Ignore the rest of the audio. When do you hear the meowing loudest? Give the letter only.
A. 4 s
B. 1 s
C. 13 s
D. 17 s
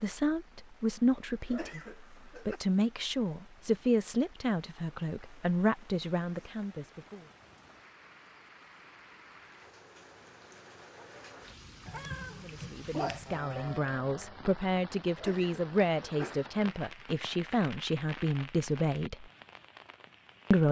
C.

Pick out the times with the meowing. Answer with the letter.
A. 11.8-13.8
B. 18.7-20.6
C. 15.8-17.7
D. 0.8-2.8
A.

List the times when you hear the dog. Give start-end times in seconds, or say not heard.
not heard.